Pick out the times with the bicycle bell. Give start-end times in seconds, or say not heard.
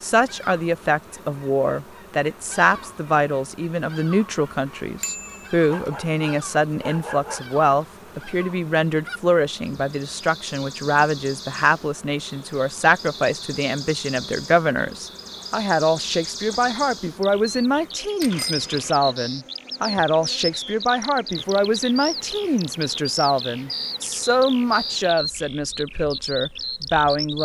5.0-5.5, 18.2-18.9.